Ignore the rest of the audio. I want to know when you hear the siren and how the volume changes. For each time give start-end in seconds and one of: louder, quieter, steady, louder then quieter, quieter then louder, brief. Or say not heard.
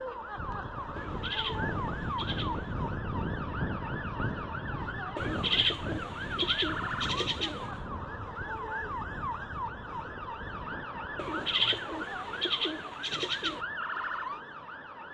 0.0-15.0 steady.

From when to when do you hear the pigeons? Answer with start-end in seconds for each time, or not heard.
0.9-2.7, 5.2-7.8, 11.2-13.6.